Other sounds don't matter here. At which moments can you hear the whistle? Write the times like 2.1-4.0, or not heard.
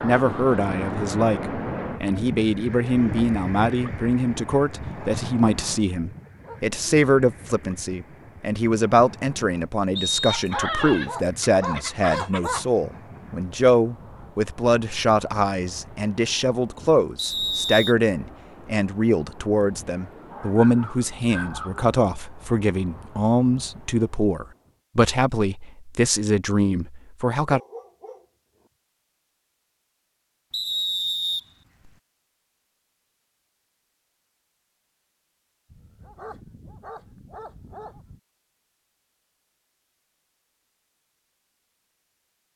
9.9-10.6, 17.1-17.9, 30.5-31.9.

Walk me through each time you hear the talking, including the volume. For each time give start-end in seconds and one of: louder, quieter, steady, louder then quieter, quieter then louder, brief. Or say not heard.
0.0-27.6 steady.